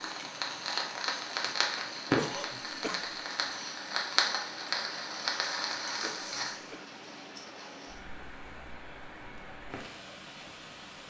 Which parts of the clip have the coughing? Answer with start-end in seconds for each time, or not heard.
2.1-3.0, 6.0-6.8.